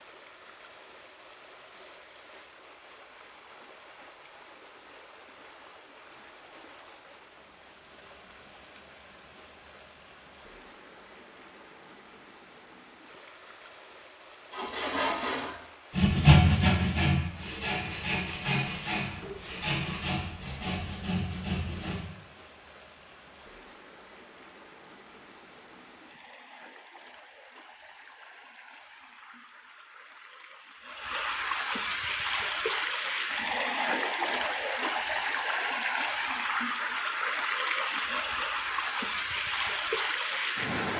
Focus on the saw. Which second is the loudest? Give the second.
16 s.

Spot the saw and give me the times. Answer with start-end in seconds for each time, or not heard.
14.5-22.0.